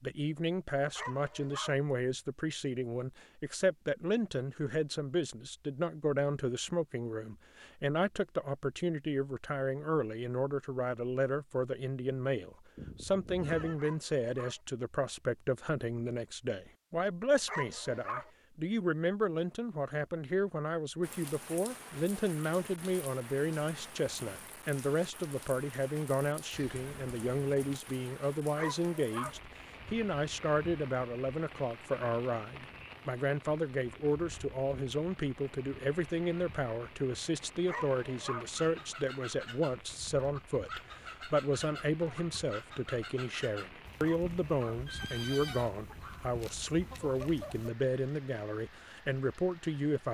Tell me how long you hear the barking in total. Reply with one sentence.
You can hear the barking for 5 seconds altogether.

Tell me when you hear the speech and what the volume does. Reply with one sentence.
The speech can be heard from 0.0 to 50.0 s, at a steady volume.